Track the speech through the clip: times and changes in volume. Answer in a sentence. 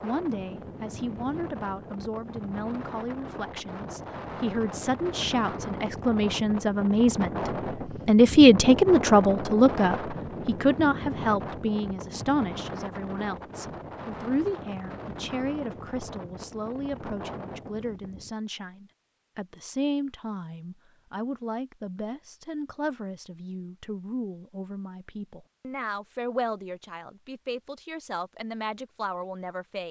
You can hear the speech from 0.0 to 29.8 s, getting louder then quieter.